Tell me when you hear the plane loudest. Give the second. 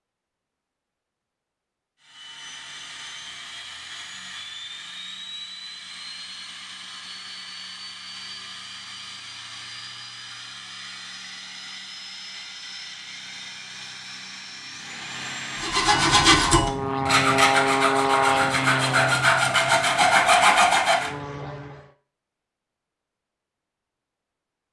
18 s.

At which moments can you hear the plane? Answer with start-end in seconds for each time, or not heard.
2.0-21.9.